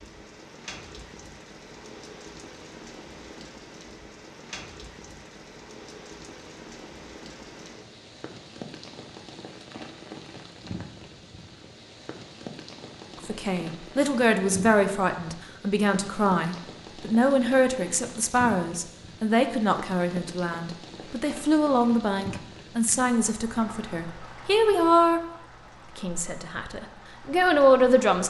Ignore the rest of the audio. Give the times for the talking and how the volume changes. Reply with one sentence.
The talking can be heard from 13.2 to 25.2 s, at a steady volume; and briefly from 25.9 to 28.2 s.